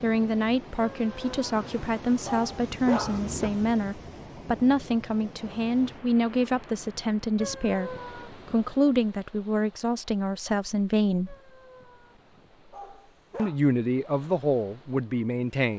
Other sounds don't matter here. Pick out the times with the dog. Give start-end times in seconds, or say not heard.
0.8-3.5, 7.3-8.9, 11.2-13.6.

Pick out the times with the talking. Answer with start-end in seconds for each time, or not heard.
0.0-11.3, 13.3-15.7.